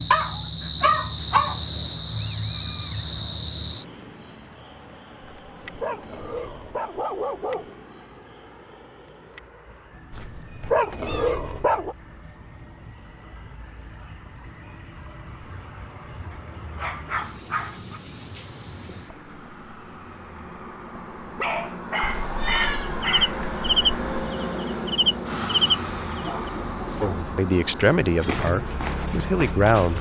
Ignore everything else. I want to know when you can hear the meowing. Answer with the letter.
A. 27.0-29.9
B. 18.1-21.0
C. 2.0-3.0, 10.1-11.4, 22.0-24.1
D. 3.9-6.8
C.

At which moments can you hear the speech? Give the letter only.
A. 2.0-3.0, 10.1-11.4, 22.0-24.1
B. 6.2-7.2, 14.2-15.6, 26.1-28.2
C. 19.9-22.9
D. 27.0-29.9
D.